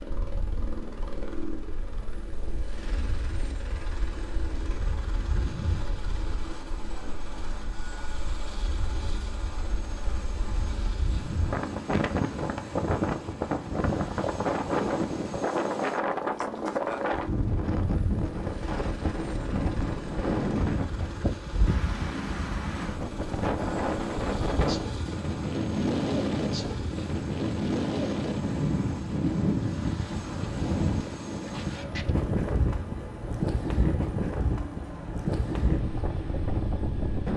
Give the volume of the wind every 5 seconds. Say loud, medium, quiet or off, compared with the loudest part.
quiet, quiet, loud, loud, loud, loud, loud, loud.